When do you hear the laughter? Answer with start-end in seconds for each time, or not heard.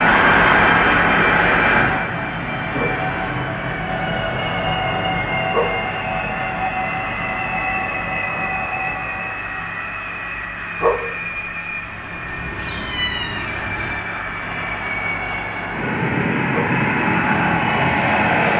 not heard.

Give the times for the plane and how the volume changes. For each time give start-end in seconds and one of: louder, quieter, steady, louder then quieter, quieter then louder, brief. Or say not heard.
0.0-18.5 quieter then louder.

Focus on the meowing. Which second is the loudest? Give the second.
13 s.